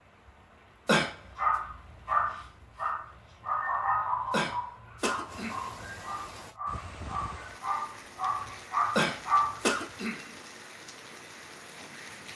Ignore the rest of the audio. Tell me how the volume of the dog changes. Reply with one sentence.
The loudness of the dog goes down, then up.